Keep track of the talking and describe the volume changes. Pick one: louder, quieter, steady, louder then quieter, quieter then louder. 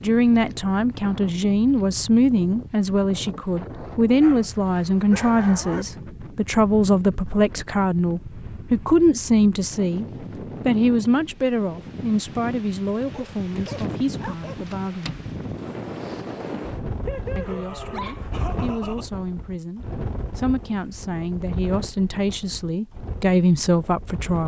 quieter then louder.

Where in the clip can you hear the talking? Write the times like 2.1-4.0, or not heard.
0.0-10.1, 10.7-15.2, 17.4-24.4.